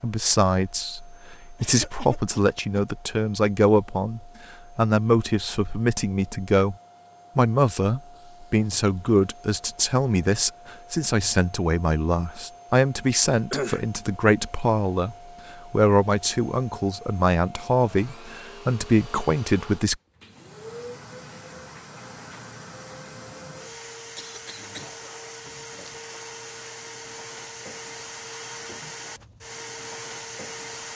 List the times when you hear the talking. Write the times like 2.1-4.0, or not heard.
0.0-6.8, 7.3-19.9.